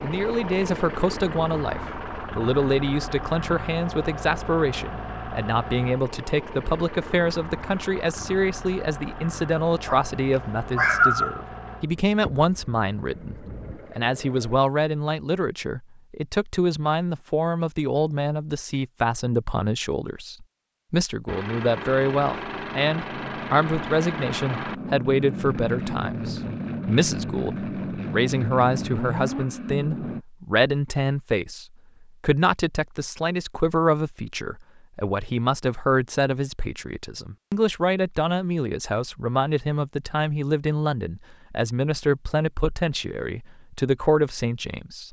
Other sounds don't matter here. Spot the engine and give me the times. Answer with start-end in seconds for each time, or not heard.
0.0-14.6, 21.2-30.2.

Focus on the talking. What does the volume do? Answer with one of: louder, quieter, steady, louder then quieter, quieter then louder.
steady.